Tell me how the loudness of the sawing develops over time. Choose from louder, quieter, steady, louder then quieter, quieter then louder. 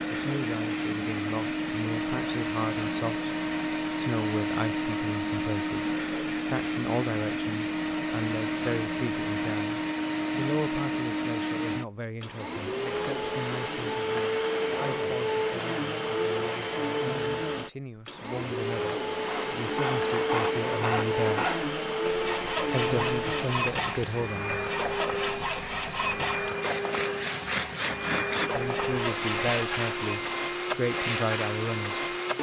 steady.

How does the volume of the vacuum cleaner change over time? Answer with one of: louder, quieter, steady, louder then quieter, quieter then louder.
steady.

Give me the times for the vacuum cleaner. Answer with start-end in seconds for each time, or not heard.
0.0-32.3.